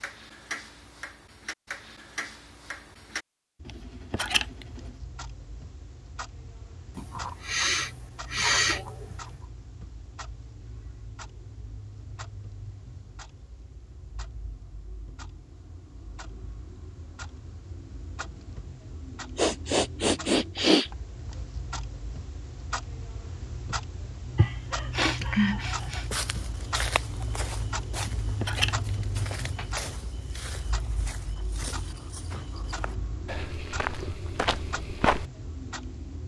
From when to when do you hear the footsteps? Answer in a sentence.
You can hear the footsteps from 25.8 to 35.2 s.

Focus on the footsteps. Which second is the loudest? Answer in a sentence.
The volume of the footsteps peaks at 35 seconds.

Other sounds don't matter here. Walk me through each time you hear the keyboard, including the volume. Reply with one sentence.
The keyboard can't be heard in this clip.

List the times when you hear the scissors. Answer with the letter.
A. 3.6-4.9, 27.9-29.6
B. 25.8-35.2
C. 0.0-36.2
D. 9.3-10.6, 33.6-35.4
A.